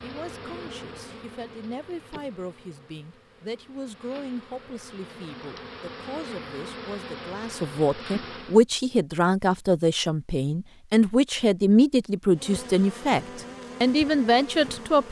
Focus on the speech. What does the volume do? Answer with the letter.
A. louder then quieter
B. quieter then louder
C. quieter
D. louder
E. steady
D.